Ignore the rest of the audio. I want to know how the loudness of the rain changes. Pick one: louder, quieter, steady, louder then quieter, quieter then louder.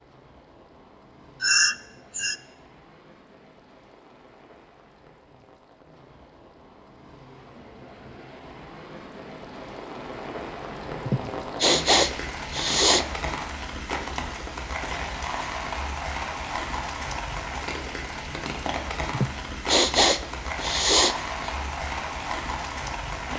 louder.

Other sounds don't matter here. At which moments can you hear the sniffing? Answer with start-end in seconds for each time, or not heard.
1.4-2.4, 11.1-13.1, 19.1-21.5.